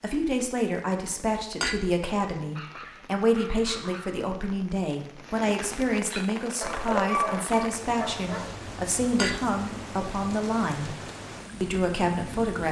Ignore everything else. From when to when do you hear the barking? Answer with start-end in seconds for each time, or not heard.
2.4-4.2, 6.6-8.6.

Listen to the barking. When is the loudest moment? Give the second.
7 s.